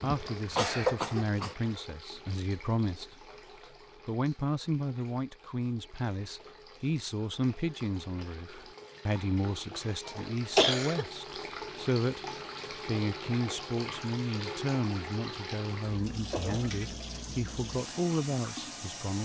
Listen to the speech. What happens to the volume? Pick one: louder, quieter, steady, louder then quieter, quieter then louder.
steady.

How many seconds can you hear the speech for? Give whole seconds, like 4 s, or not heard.
18 s.